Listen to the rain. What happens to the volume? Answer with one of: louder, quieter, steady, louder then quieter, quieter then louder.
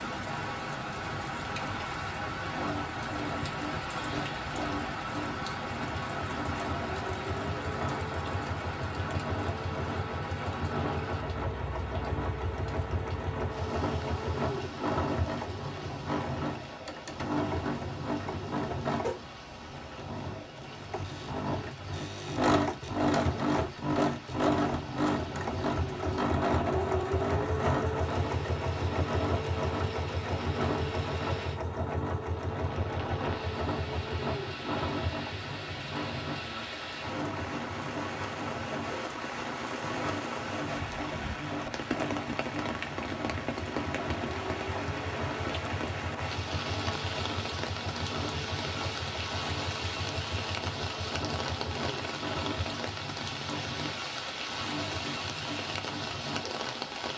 quieter then louder.